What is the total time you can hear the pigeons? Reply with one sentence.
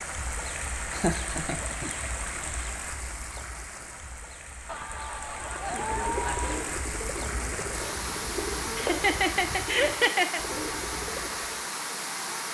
The pigeons can be heard for 6 seconds in total.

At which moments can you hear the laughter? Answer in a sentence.
The laughter can be heard from 0.9 to 1.9 s, from 4.7 to 6.7 s and from 8.6 to 10.4 s.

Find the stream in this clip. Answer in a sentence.
The stream can be heard from 0.0 to 12.4 s.